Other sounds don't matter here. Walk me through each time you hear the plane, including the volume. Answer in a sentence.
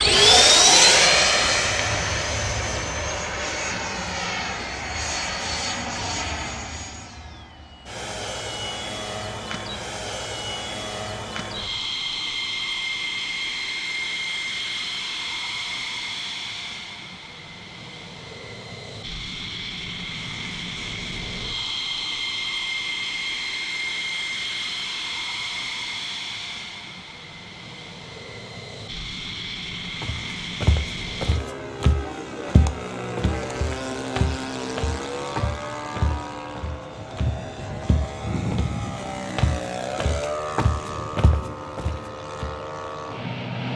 You can hear the plane from 0.0 to 43.7 s, getting quieter.